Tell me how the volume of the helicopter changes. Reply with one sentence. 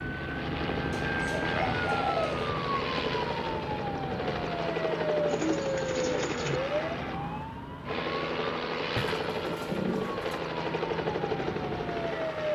The loudness of the helicopter stays about the same.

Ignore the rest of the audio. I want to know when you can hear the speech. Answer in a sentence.
The speech can't be heard in this clip.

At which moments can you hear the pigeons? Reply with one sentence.
You can hear the pigeons from 0.9 to 2.5 s, from 5.2 to 6.6 s and from 8.9 to 10.4 s.